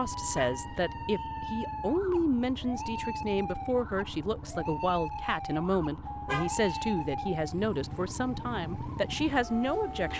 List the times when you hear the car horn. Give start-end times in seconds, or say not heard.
0.1-0.9, 6.0-7.2.